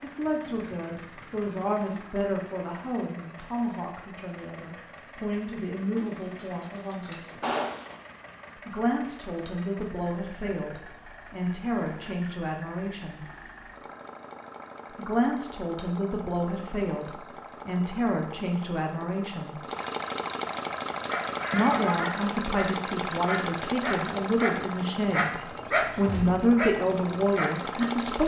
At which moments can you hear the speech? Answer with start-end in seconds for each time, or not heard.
0.0-7.3, 8.6-13.2, 14.9-19.6, 21.5-28.2.